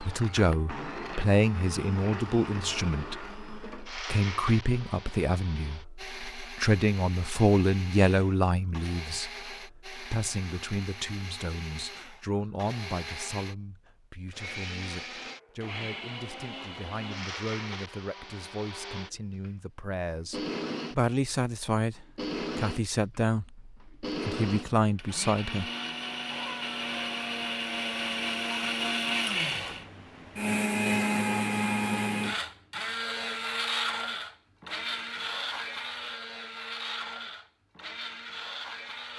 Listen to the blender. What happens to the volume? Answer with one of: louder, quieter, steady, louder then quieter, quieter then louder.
louder.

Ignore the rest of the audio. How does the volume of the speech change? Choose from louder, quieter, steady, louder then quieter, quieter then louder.
quieter then louder.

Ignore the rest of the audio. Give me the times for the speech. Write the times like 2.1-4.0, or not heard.
0.0-25.6.